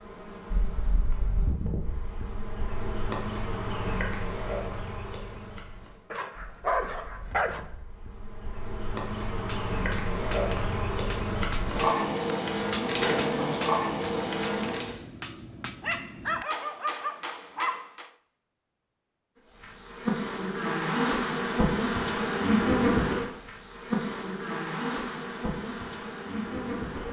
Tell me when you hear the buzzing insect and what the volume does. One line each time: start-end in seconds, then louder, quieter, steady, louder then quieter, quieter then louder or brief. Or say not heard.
0.0-14.9 quieter then louder
19.5-27.0 quieter.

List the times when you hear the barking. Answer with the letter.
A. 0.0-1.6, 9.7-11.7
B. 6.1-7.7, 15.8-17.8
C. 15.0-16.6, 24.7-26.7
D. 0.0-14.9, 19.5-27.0
B.